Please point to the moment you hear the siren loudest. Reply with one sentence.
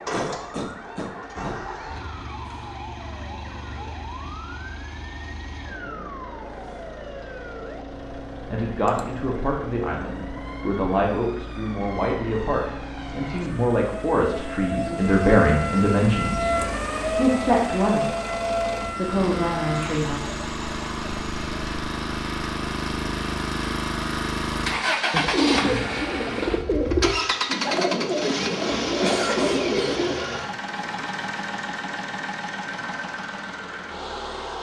The loudest moment of the siren is at 17 seconds.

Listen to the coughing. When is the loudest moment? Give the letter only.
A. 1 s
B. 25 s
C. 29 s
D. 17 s
C.